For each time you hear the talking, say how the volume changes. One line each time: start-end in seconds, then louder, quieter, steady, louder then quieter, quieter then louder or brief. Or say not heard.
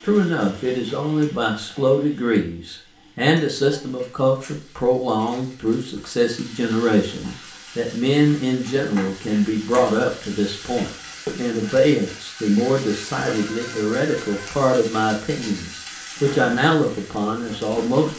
0.0-18.1 steady.